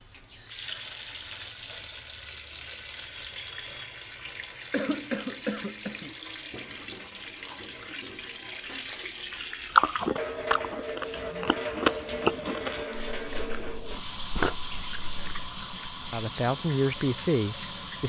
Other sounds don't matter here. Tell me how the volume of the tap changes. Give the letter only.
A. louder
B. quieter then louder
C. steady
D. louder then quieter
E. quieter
C.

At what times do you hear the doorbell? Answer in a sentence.
You can't hear the doorbell here.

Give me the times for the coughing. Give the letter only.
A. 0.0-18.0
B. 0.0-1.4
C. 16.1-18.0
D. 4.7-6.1
D.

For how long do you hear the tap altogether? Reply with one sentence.
You can hear the tap for 18 seconds altogether.